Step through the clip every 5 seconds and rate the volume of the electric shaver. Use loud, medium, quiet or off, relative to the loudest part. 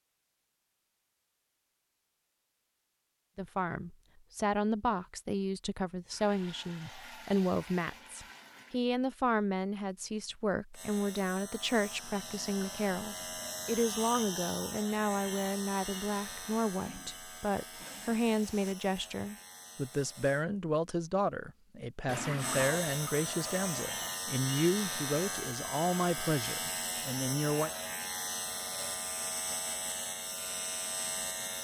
off, off, loud, medium, loud, loud, loud.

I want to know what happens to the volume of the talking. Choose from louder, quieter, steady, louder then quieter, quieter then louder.
steady.